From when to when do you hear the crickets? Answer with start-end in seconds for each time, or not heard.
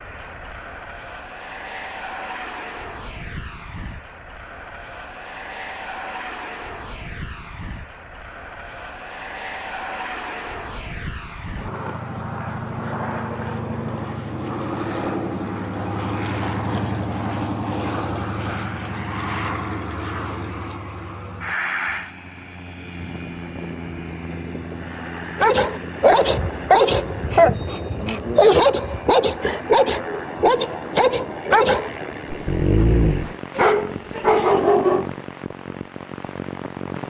not heard.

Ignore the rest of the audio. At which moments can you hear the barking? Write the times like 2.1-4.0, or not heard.
25.4-35.1.